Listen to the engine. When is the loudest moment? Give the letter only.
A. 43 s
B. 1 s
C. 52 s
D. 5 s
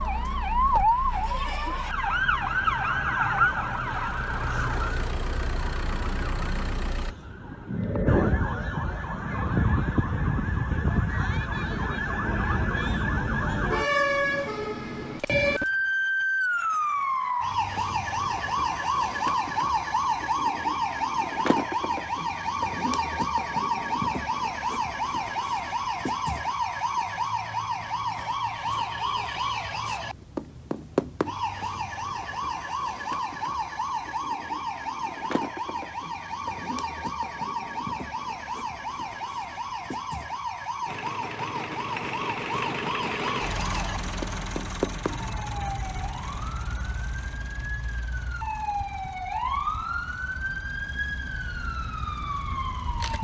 A.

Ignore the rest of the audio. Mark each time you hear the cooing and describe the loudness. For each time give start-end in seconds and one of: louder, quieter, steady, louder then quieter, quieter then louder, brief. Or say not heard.
not heard.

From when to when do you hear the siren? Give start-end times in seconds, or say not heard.
0.0-53.1.